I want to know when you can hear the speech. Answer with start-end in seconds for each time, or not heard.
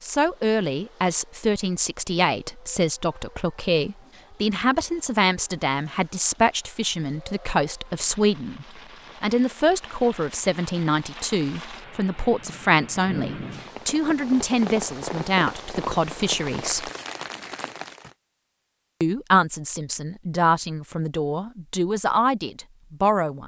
0.0-16.9, 19.0-23.4.